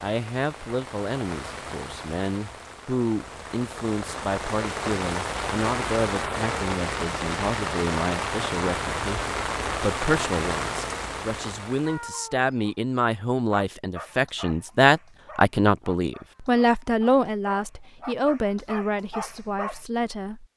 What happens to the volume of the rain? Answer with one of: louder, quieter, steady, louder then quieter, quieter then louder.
louder.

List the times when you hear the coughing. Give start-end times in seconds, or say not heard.
not heard.